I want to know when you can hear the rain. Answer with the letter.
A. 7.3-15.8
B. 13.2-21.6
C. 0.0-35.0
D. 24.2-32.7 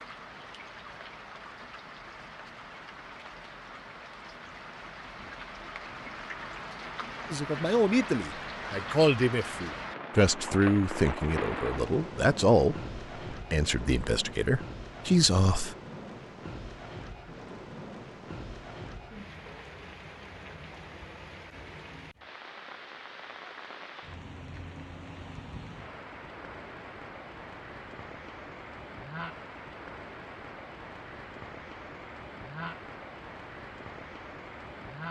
C.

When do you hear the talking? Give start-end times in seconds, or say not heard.
7.3-15.8.